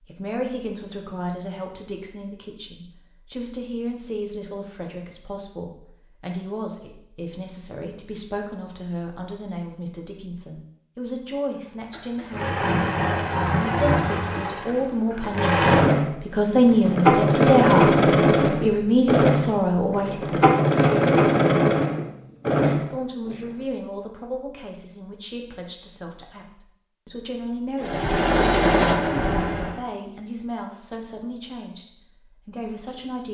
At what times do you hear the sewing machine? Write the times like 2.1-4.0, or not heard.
11.9-23.5, 27.8-29.8.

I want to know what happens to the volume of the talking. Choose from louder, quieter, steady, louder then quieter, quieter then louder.
louder then quieter.